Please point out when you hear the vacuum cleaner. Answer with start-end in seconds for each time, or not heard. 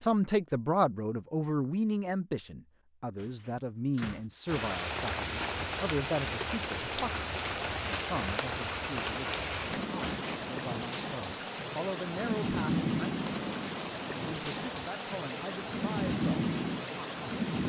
not heard.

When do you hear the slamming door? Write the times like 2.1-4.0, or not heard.
3.1-4.2, 10.0-10.6.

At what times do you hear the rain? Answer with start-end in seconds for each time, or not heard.
4.5-17.6.